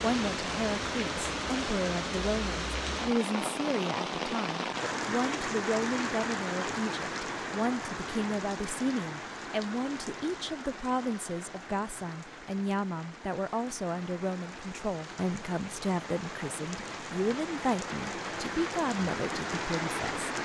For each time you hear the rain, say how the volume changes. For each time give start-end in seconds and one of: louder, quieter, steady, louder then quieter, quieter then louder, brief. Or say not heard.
0.0-20.3 quieter then louder.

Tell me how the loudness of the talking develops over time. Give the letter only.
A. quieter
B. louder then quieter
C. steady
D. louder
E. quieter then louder
C.